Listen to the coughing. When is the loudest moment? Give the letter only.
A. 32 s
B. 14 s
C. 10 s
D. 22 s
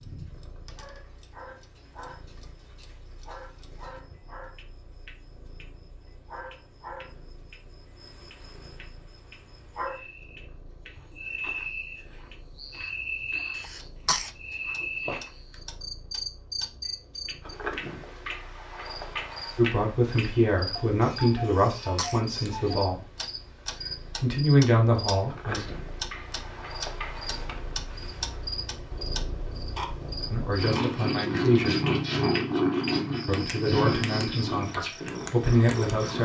B.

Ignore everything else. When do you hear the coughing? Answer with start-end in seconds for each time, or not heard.
13.6-14.3, 21.4-22.2.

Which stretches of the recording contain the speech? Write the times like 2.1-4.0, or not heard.
19.6-23.0, 24.2-25.7, 30.3-31.8, 33.2-36.2.